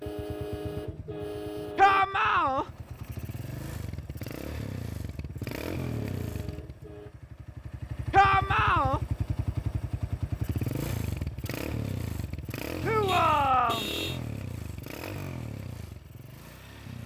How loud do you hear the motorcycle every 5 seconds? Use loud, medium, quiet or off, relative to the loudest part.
medium, loud, loud, medium.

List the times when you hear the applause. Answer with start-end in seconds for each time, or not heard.
not heard.